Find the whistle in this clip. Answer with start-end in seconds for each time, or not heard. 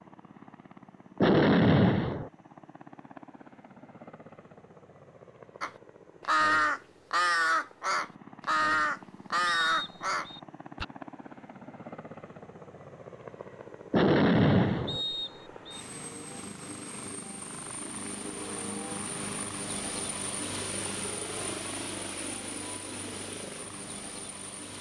9.4-10.4, 14.8-15.8.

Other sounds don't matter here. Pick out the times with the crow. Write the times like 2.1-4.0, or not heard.
5.6-10.8.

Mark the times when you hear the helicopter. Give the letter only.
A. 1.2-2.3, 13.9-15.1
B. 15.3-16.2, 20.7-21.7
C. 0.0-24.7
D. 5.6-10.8
C.